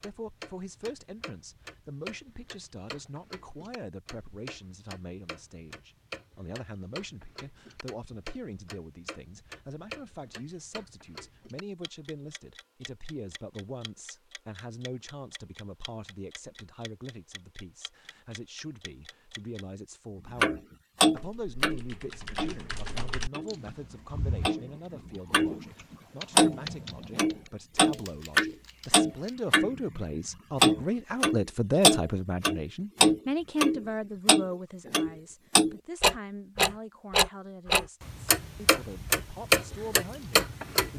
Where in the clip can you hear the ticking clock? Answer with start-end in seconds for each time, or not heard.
0.0-19.6, 20.4-40.9.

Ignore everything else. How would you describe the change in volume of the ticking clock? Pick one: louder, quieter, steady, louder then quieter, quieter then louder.
louder.